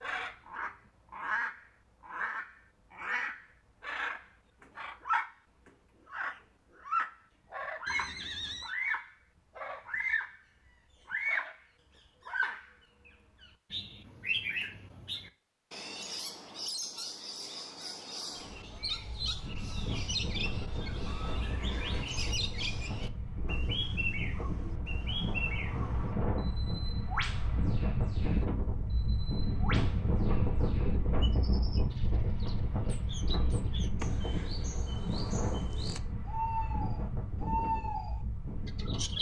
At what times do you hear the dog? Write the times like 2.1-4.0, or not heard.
not heard.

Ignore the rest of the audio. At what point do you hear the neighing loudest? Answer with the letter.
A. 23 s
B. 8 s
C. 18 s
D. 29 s
B.